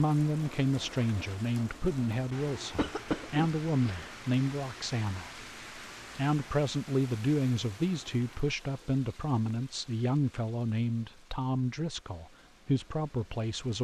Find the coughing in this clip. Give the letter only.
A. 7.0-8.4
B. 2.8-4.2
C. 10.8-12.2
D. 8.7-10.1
B.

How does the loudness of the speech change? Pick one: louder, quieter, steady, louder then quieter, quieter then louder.
steady.